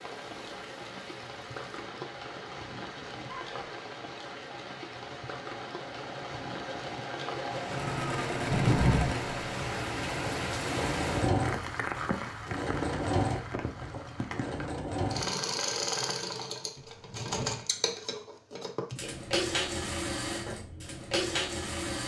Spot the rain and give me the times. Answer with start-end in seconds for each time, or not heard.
0.0-14.7.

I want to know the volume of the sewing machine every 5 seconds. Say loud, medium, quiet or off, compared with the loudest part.
quiet, loud, loud, loud, loud.